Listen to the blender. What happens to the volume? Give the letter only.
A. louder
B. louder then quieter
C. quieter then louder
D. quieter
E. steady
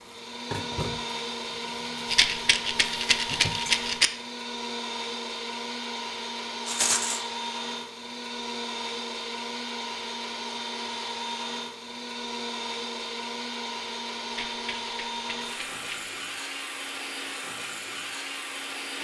E.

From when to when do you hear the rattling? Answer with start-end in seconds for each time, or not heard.
2.1-4.1, 6.7-7.2, 14.3-16.1.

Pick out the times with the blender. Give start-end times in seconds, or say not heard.
0.0-18.9.